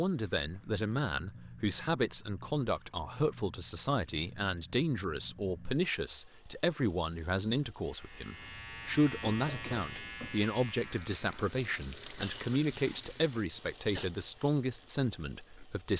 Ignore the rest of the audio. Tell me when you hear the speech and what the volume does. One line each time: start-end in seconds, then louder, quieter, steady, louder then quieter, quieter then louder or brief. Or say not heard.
0.0-15.9 steady.